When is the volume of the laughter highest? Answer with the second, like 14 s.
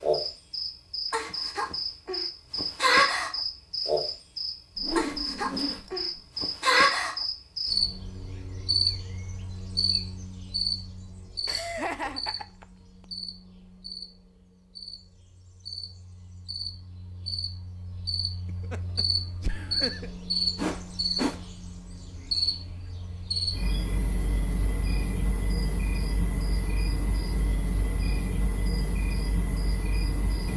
12 s.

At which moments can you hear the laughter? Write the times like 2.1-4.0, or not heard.
11.4-12.7, 18.4-20.1.